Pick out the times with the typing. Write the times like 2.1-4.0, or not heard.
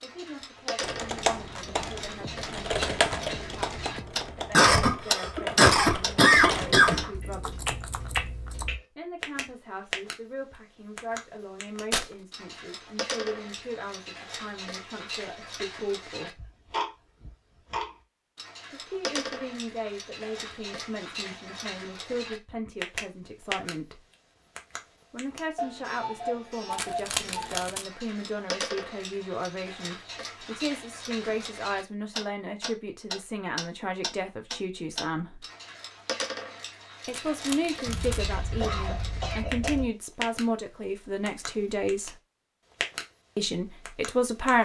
0.8-8.8.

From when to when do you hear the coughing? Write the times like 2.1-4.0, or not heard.
4.5-7.1, 37.9-39.9.